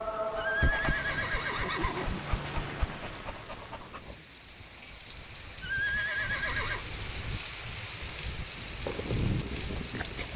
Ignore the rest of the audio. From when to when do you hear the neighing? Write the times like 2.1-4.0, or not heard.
0.3-2.2, 5.6-6.8.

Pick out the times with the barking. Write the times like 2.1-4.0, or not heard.
0.1-4.2, 8.8-10.3.